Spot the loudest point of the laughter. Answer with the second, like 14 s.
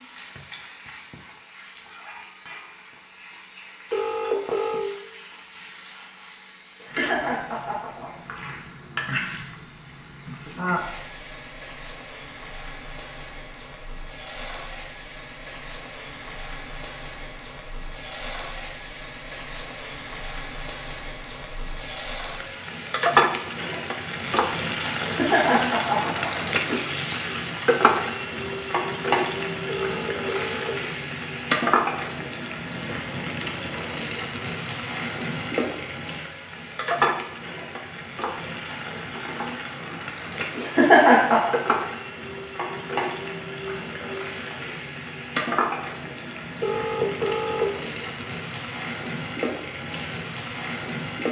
41 s.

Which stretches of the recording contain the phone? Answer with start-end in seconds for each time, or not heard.
3.9-4.8, 29.6-30.8, 46.6-47.7.